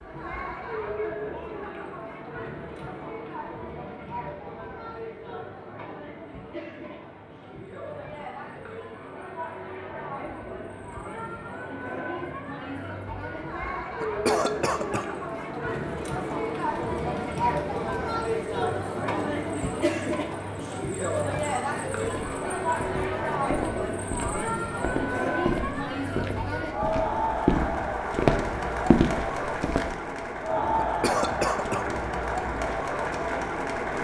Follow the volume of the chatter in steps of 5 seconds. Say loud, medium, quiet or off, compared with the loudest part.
medium, medium, medium, loud, loud, loud, loud.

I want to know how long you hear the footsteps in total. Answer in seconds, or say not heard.
8 s.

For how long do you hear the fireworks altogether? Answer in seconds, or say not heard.
not heard.